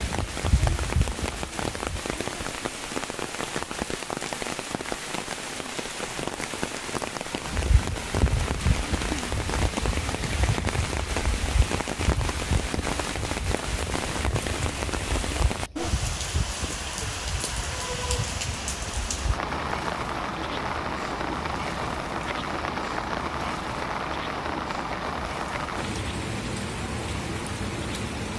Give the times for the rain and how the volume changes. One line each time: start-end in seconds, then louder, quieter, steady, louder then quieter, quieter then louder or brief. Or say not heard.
0.0-28.3 steady.